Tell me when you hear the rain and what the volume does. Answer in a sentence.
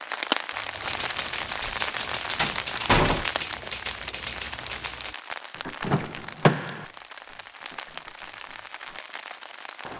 You can hear the rain from 0.0 to 9.9 s, getting quieter.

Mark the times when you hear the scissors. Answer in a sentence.
You can't hear the scissors here.